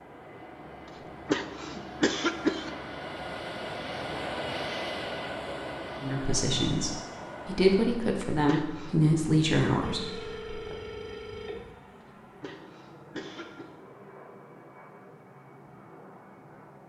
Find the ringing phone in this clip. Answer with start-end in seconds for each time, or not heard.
9.8-11.8.